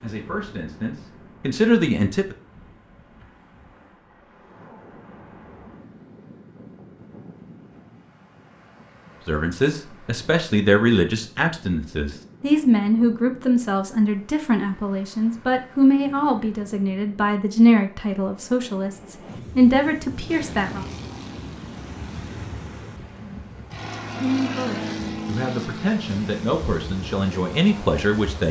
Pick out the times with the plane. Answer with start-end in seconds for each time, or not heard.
20.2-28.4.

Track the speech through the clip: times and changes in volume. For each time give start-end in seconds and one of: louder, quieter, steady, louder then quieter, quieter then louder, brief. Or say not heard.
0.0-2.4 brief
9.2-20.9 steady
24.2-28.4 louder.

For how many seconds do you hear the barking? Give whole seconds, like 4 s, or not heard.
not heard.